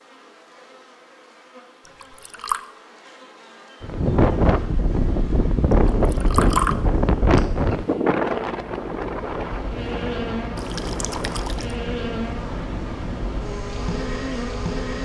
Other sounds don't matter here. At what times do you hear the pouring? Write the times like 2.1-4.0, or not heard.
1.9-2.6, 5.8-6.8, 10.6-11.8.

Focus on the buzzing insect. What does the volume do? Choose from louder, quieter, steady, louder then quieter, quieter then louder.
louder.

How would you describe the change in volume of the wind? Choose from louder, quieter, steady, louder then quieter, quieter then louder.
quieter.